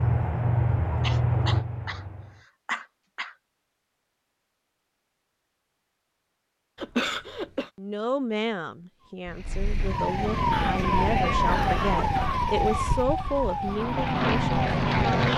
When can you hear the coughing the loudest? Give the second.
7 s.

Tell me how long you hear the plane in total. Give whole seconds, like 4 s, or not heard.
4 s.